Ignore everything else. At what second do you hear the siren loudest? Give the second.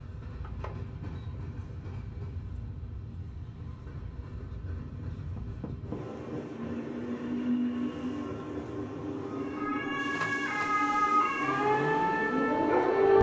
13 s.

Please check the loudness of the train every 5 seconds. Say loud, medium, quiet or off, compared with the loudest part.
medium, loud, loud.